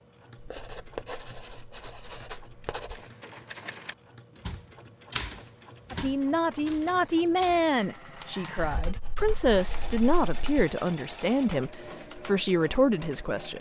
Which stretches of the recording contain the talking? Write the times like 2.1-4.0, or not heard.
5.9-13.5.